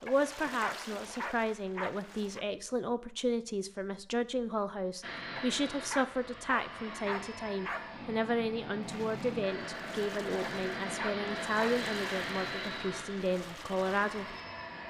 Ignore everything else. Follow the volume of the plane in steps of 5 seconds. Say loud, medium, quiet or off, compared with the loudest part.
off, loud, loud.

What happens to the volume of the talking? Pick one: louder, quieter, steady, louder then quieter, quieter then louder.
steady.